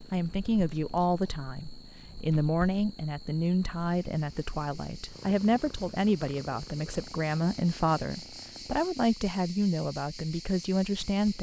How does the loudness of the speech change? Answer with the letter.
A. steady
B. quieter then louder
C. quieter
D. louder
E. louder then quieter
A.